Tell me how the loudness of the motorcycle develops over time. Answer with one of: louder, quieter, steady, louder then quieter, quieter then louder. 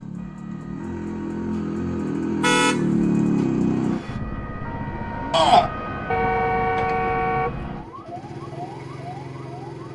louder then quieter.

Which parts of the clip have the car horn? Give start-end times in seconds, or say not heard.
2.4-2.9, 6.1-7.7.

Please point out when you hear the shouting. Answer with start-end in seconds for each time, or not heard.
5.3-5.7.